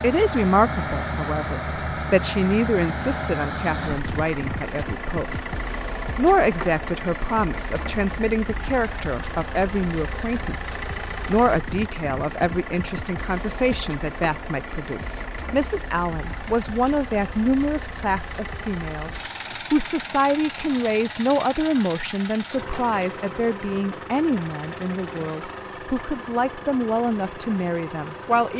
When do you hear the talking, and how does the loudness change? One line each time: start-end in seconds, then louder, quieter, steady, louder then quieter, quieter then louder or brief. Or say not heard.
0.0-28.5 steady.